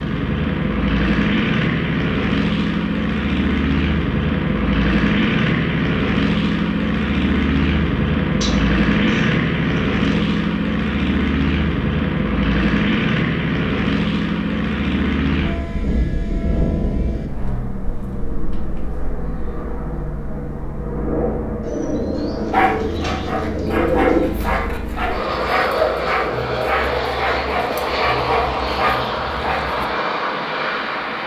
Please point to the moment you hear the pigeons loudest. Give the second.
24 s.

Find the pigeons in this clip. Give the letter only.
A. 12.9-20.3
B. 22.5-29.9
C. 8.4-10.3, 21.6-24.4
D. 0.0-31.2
C.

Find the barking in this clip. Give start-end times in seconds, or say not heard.
22.5-29.9.